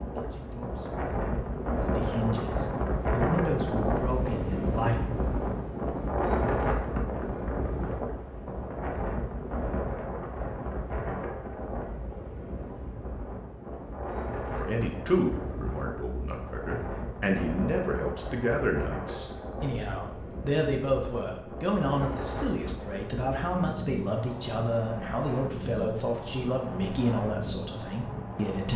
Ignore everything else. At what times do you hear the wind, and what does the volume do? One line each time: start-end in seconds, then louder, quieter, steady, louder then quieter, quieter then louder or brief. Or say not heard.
0.0-28.7 quieter.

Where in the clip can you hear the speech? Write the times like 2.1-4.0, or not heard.
0.0-5.0, 14.6-28.7.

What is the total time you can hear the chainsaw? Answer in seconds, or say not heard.
not heard.